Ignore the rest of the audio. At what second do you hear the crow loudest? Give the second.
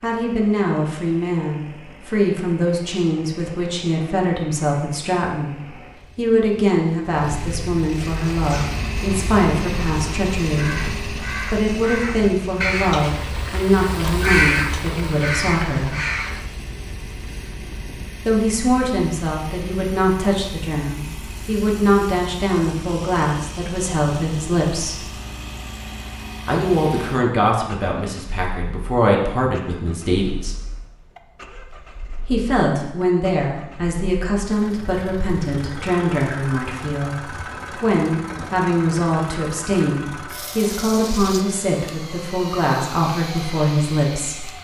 14 s.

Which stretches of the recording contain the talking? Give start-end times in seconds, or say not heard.
0.0-15.9, 18.2-25.1, 26.4-30.6, 32.2-44.5.